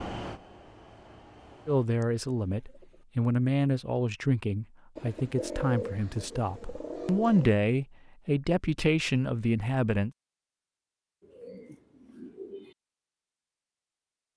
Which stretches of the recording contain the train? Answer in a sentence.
You can hear the train from 0.0 to 1.9 s.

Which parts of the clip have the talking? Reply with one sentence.
The talking can be heard from 1.6 to 10.1 s.